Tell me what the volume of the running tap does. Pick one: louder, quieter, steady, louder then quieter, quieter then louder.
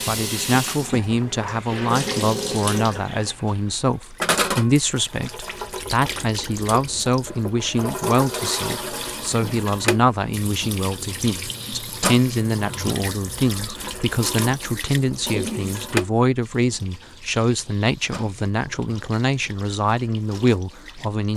quieter.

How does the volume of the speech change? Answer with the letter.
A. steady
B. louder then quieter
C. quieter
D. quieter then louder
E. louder
A.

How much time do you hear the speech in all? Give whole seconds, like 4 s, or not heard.
21 s.